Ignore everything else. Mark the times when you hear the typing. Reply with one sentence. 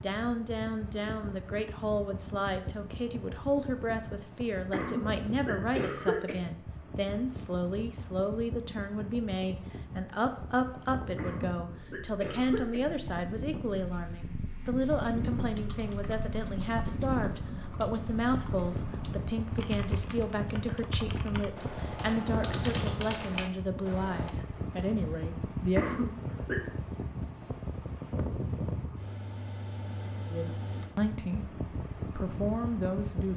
You can hear the typing from 14.7 to 24.4 s.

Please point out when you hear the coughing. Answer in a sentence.
You can hear the coughing from 4.7 to 6.3 s, from 11.2 to 12.8 s and from 25.8 to 26.6 s.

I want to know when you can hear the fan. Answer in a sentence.
The fan can be heard from 0.0 to 33.3 s.